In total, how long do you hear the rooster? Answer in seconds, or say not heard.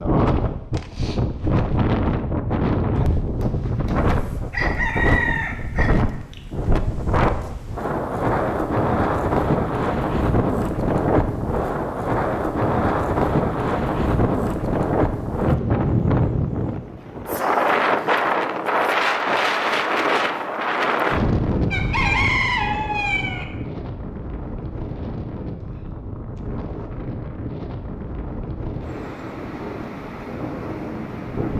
4 s.